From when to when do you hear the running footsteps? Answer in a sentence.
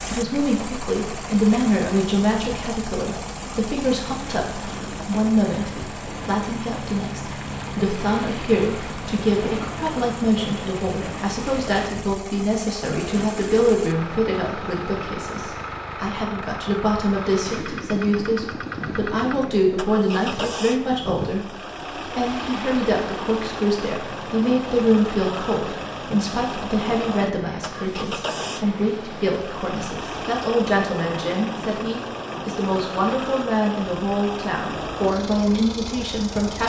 You can't hear the running footsteps here.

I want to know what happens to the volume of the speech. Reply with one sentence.
The volume of the speech stays about the same.